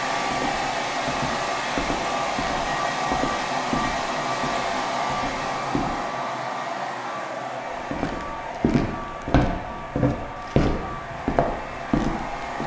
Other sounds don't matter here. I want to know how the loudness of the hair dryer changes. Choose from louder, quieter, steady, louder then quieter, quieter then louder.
quieter.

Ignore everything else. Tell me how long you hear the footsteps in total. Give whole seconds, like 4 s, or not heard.
11 s.